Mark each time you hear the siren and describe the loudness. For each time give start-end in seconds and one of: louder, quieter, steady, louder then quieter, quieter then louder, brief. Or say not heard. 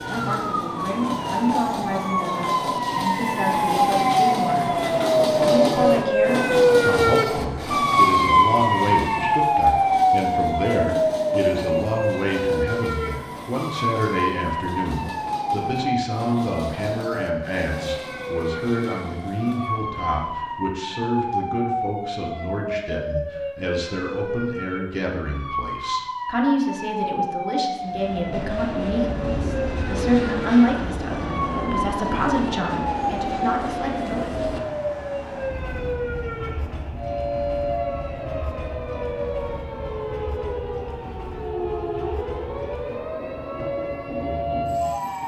0.0-45.2 quieter.